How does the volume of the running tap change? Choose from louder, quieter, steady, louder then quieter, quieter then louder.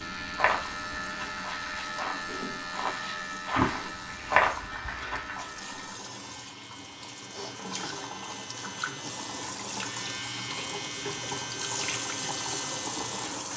louder.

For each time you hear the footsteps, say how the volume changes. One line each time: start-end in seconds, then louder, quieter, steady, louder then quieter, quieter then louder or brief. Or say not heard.
0.0-5.5 quieter then louder.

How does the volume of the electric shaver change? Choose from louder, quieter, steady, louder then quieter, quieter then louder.
quieter then louder.